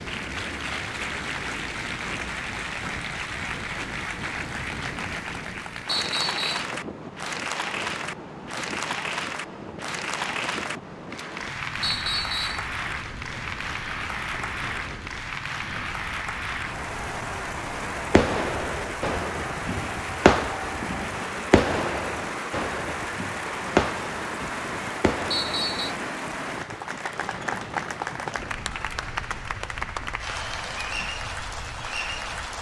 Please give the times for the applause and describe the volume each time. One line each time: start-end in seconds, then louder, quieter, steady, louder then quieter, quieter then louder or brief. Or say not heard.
0.0-32.5 steady.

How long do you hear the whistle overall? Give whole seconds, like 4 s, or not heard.
2 s.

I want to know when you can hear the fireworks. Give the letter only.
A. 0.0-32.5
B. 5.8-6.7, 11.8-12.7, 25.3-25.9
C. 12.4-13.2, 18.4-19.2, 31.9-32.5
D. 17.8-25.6
D.